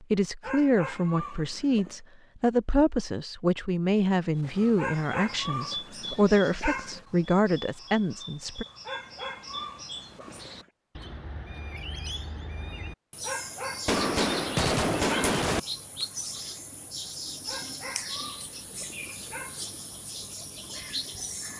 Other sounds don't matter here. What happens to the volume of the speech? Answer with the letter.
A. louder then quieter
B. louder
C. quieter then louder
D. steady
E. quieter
D.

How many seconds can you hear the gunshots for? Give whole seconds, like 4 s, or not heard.
2 s.